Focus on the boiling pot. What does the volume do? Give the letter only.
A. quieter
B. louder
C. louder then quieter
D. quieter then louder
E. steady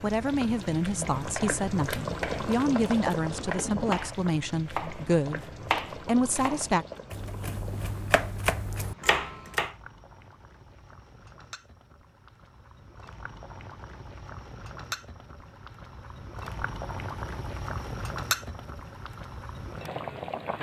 D.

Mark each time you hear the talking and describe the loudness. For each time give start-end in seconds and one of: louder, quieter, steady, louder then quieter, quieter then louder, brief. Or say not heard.
0.0-6.8 steady.